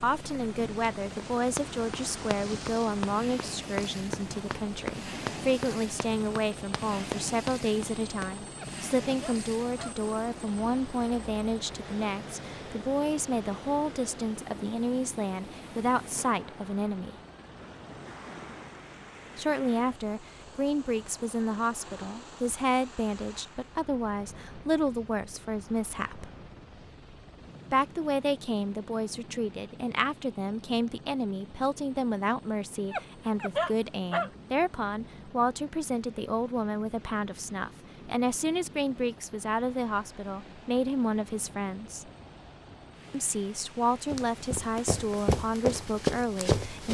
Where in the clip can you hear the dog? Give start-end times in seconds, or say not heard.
8.6-9.9, 32.9-34.3.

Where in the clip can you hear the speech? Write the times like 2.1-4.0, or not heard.
0.0-17.1, 19.4-26.3, 27.7-42.0, 43.1-46.9.